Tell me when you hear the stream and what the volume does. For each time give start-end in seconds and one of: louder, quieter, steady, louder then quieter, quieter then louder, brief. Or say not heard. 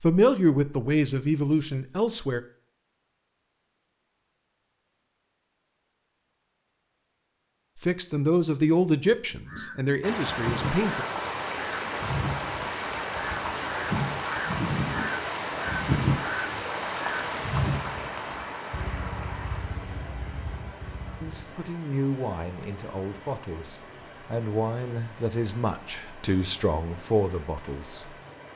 10.0-28.5 quieter.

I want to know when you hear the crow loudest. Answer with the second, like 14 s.
16 s.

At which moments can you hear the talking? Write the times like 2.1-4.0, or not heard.
0.0-2.4, 7.8-11.1, 21.2-28.1.